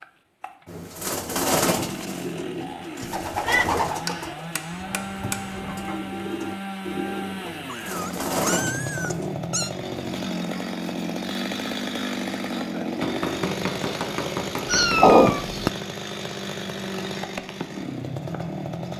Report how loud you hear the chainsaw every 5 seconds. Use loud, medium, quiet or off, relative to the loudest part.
medium, loud, loud, loud.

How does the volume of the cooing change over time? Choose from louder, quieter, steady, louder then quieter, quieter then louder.
quieter then louder.